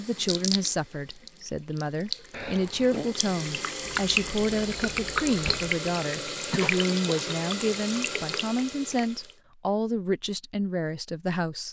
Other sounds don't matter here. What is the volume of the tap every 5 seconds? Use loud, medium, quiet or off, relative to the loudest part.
loud, loud, off.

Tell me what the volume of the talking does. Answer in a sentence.
The loudness of the talking stays about the same.